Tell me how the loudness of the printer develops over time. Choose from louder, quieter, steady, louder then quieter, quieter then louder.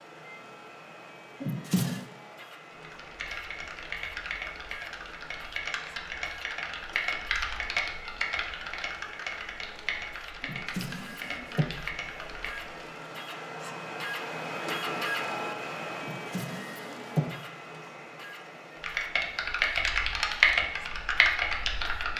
louder then quieter.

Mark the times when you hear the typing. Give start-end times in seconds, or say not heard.
2.7-12.8, 18.8-22.1.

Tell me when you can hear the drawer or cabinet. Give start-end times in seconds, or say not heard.
1.4-2.0, 10.4-11.7, 16.0-17.3.